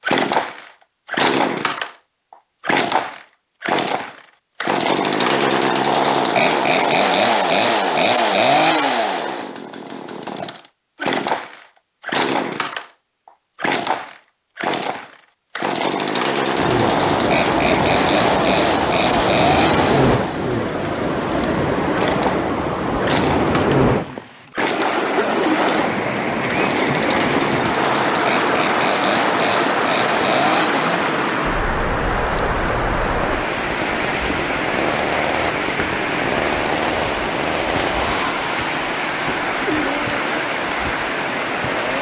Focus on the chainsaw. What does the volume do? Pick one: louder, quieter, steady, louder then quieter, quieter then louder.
quieter.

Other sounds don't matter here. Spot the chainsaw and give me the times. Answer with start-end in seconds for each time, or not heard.
0.0-41.9.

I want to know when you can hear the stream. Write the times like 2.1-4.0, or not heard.
16.5-41.9.